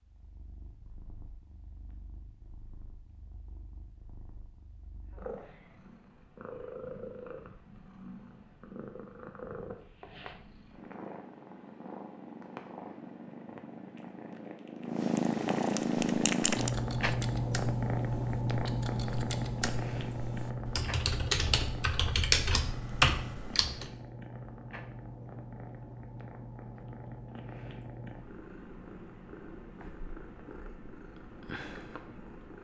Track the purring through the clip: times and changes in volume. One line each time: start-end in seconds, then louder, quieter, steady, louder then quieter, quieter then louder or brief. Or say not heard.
0.0-32.6 louder then quieter.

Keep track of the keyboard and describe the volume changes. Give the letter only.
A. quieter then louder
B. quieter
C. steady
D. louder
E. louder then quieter
D.